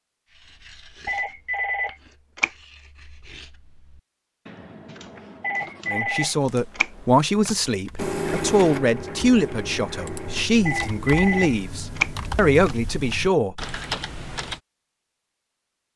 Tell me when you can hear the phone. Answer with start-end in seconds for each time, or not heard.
1.1-2.5, 5.4-7.5, 10.7-12.8.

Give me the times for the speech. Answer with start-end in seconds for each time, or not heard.
5.9-13.6.